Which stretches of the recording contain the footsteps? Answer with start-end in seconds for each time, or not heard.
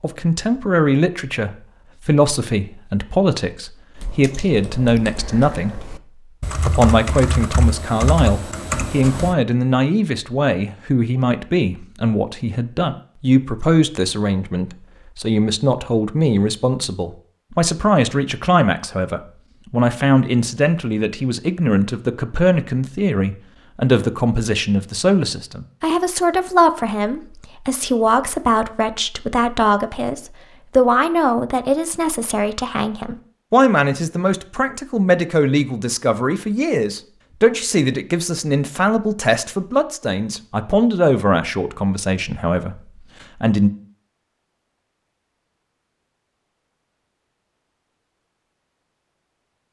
not heard.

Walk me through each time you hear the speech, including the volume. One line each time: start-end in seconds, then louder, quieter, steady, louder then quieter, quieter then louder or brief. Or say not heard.
0.0-5.9 steady
6.7-43.7 steady.